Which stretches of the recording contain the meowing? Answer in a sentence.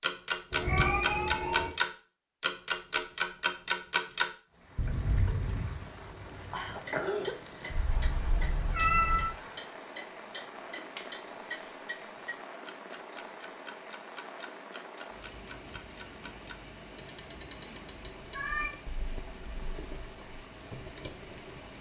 You can hear the meowing from 0.5 to 1.7 s, from 7.7 to 9.3 s and from 18.3 to 20.0 s.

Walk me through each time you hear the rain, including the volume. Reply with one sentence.
The rain can be heard from 4.5 to 21.7 s, at a steady volume.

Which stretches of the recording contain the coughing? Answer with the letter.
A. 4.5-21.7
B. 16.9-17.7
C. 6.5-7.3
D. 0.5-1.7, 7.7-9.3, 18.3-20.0
C.